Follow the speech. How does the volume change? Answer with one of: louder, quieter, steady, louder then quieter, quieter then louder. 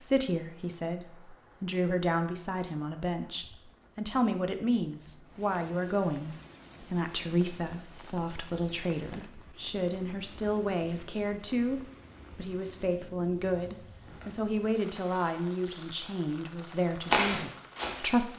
steady.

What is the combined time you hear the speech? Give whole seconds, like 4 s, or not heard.
18 s.